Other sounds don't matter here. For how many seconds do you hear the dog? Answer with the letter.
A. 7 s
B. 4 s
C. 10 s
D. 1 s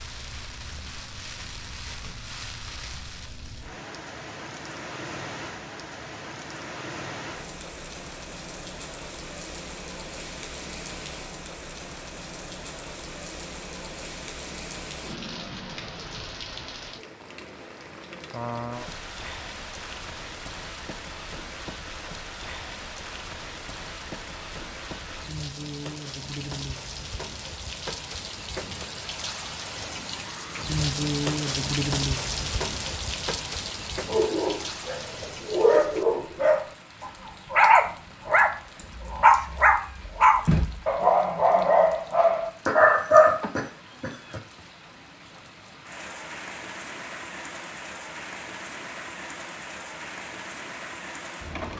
C.